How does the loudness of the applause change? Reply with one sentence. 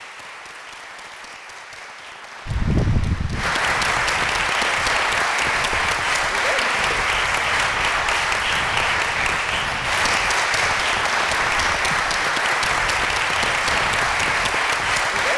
The volume of the applause goes up.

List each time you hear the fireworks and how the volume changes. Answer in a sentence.
You can't hear the fireworks here.